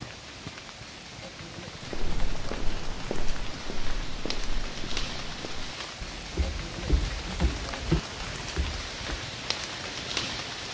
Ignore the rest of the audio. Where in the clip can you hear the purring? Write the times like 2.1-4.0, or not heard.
not heard.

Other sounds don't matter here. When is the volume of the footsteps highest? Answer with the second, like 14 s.
8 s.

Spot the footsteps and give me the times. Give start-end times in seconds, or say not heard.
1.9-9.2.